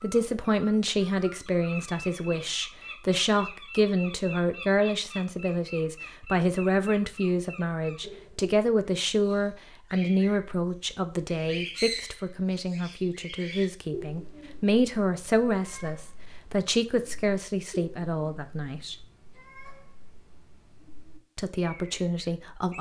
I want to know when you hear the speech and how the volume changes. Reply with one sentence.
The speech can be heard from 0.0 to 19.1 s, at a steady volume; and briefly from 21.4 to 22.7 s.